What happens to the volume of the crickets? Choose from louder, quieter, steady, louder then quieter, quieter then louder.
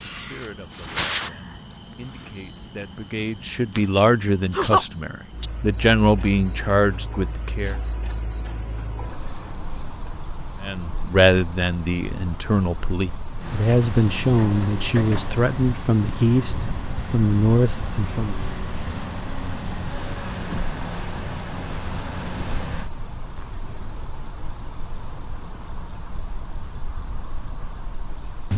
steady.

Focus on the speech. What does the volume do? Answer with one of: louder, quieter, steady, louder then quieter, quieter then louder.
louder.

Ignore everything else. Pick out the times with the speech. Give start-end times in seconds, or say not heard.
0.1-7.8, 10.6-18.4.